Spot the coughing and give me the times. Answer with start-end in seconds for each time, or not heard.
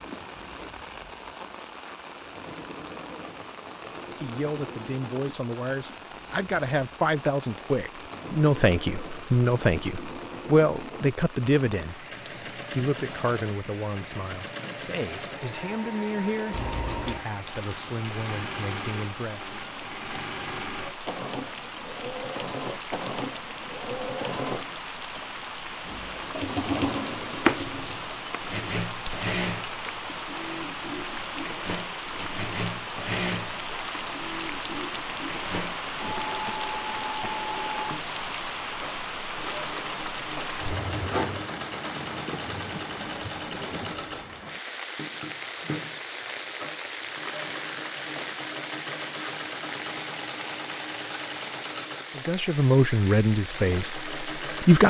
not heard.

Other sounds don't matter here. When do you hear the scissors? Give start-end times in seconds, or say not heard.
16.5-17.2.